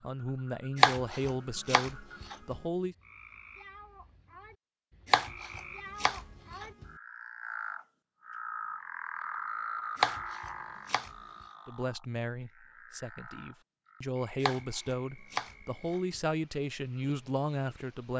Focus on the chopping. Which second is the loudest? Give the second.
1 s.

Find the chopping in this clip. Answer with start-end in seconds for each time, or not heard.
0.8-2.5, 5.1-6.8, 10.0-11.1, 14.4-16.2.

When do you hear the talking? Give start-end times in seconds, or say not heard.
0.0-3.0, 11.7-18.1.